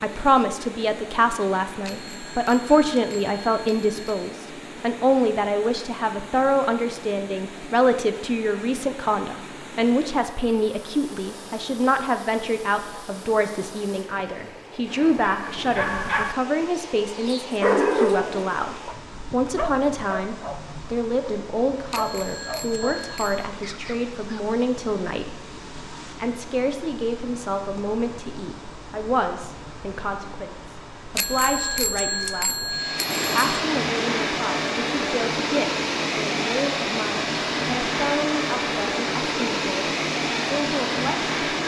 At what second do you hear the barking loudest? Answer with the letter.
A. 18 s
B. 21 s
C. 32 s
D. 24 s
A.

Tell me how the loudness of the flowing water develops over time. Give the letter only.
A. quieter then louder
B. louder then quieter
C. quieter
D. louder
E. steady
D.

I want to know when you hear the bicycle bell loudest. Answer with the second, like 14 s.
32 s.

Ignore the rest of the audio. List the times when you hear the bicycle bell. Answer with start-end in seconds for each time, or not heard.
1.8-4.3, 21.9-23.5, 31.1-33.6.